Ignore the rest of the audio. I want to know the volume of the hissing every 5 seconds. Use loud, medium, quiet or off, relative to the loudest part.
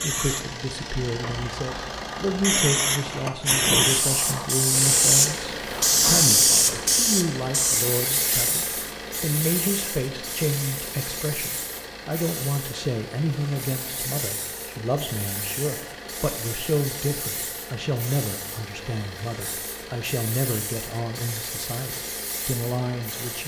loud, loud, quiet, quiet, quiet.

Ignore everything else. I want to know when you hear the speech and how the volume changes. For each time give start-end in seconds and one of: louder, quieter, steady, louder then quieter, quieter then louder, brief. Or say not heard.
0.0-23.4 steady.